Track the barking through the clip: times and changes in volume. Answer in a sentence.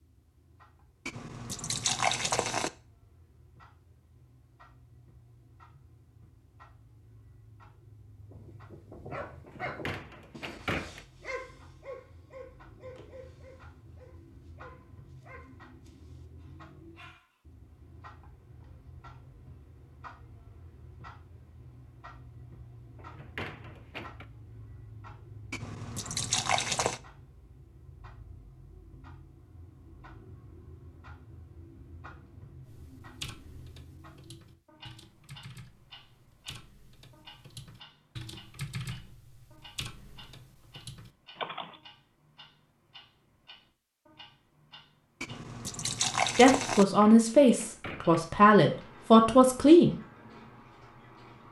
The barking can be heard from 8.2 to 17.4 s, getting quieter.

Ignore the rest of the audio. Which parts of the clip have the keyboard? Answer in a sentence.
You can hear the keyboard from 32.6 to 41.8 s.